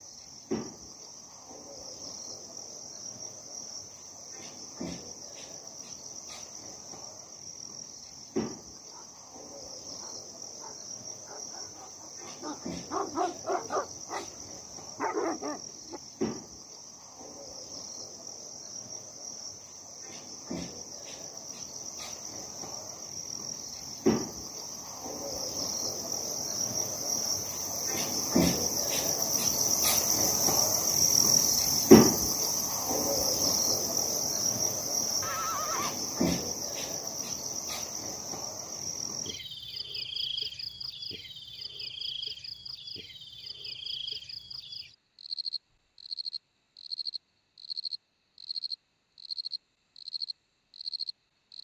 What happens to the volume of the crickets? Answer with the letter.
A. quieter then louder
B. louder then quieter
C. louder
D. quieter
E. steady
B.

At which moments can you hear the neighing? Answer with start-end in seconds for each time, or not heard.
35.2-36.0.